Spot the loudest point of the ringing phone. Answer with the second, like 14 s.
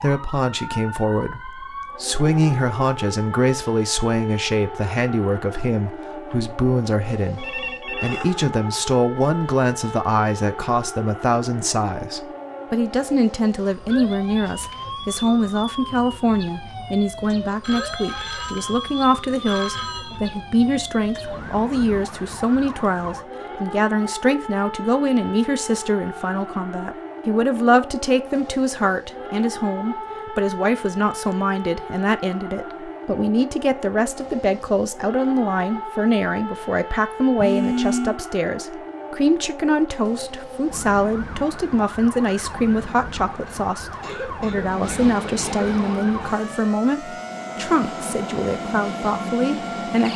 38 s.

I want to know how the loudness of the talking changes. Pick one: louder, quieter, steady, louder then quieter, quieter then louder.
steady.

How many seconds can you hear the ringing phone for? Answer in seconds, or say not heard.
4 s.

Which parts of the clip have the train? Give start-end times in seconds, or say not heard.
44.5-50.1.